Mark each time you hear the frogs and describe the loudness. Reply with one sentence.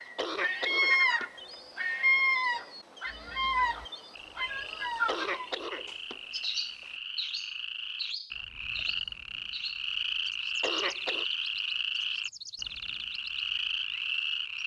You can hear the frogs from 3.0 to 14.6 s, getting louder.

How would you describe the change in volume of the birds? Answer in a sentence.
The loudness of the birds goes down.